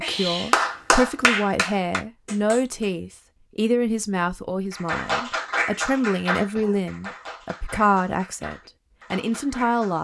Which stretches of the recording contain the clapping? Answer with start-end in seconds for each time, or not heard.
0.0-2.9, 4.7-9.9.